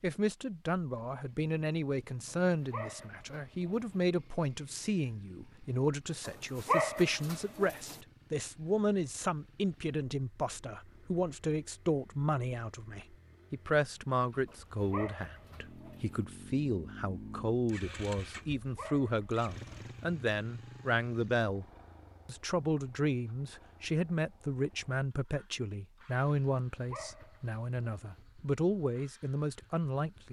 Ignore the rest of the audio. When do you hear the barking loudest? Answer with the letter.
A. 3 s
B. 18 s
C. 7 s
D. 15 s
C.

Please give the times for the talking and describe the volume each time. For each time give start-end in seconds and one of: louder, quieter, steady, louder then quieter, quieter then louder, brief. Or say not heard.
0.0-21.6 steady
22.2-30.2 quieter then louder.